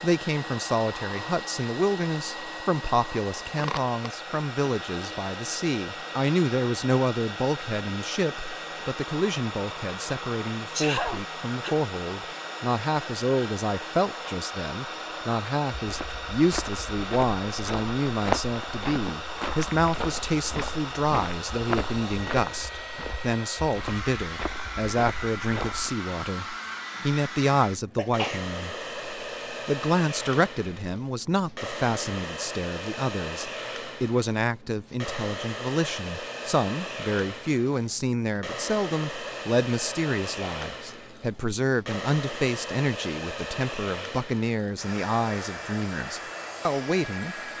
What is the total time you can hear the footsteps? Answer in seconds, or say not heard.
10 s.